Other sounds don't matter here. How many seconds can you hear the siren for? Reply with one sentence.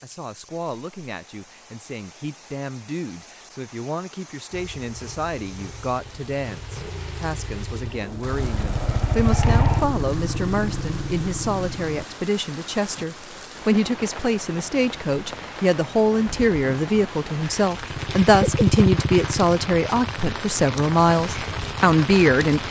The siren can't be heard in this clip.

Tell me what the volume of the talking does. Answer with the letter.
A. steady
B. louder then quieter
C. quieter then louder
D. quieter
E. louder
E.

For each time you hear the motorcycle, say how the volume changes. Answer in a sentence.
You can hear the motorcycle from 4.5 to 12.1 s, getting louder then quieter; and from 17.9 to 22.6 s, getting quieter.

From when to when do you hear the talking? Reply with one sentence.
You can hear the talking from 0.0 to 22.6 s.